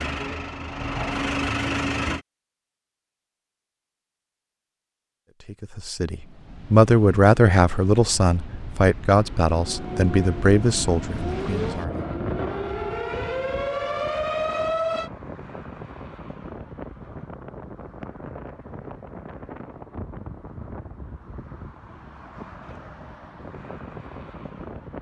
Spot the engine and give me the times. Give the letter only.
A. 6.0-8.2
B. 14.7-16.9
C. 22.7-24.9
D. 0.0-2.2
D.